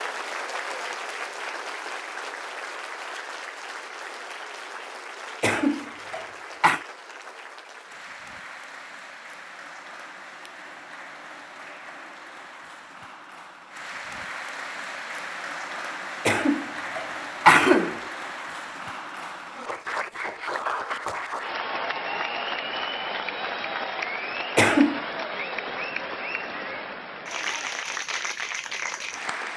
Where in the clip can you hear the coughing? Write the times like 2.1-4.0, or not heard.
5.4-6.8, 16.2-17.9, 24.6-25.1.